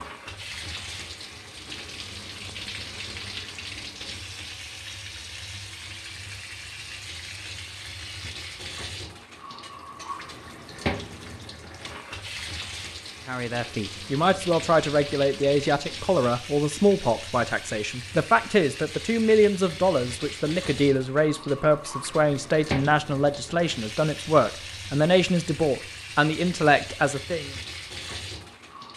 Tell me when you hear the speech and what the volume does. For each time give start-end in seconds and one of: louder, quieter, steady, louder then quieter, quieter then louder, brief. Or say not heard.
13.2-27.5 steady.